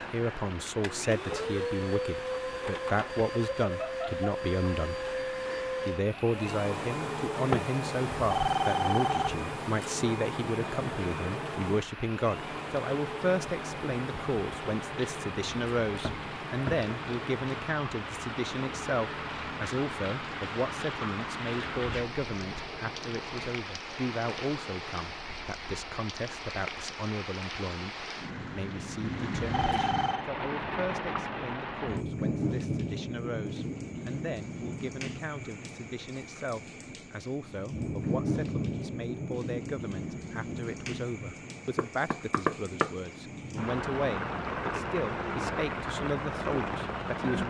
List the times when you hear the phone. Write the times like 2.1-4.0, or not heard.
8.2-9.4, 29.5-30.2.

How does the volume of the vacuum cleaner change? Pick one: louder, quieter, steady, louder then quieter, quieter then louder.
quieter.